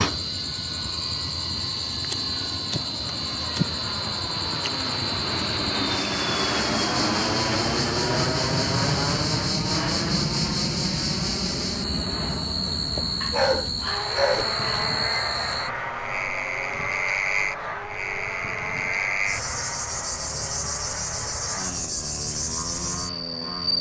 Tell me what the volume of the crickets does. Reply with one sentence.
The loudness of the crickets stays about the same.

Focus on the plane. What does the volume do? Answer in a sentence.
The loudness of the plane goes up, then down.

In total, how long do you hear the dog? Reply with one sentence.
You can hear the dog for 2 seconds altogether.